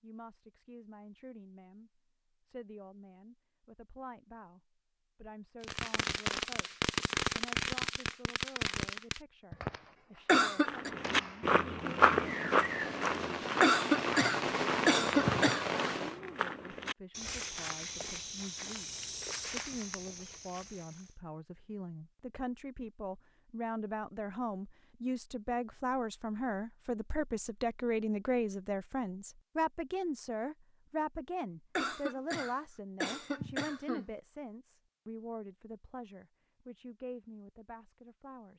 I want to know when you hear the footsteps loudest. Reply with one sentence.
The loudest moment of the footsteps is at 12 seconds.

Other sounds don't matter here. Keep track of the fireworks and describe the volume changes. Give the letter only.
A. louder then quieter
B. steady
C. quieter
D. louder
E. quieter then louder
E.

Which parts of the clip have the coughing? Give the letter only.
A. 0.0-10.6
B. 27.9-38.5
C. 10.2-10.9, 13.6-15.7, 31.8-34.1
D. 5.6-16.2
C.